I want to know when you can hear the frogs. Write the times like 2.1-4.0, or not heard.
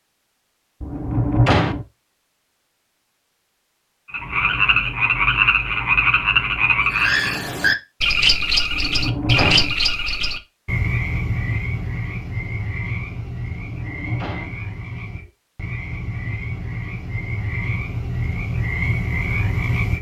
4.0-19.9.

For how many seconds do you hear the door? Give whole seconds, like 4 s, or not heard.
3 s.